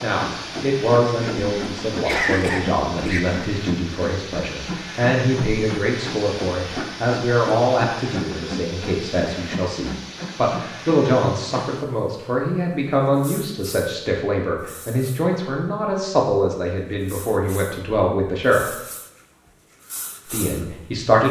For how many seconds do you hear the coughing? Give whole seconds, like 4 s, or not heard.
2 s.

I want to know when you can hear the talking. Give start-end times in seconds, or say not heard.
0.0-18.8, 20.2-21.2.